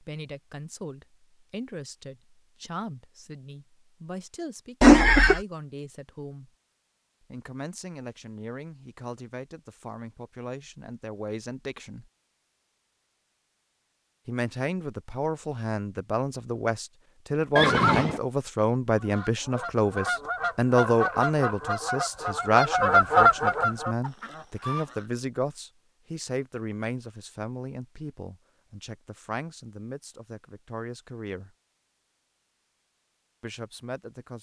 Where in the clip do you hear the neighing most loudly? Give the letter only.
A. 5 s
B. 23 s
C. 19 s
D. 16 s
A.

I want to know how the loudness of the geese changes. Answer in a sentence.
The loudness of the geese goes up, then down.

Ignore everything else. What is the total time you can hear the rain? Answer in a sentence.
The rain can't be heard in this clip.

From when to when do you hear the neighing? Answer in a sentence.
The neighing can be heard from 4.8 to 5.4 s and from 17.6 to 18.2 s.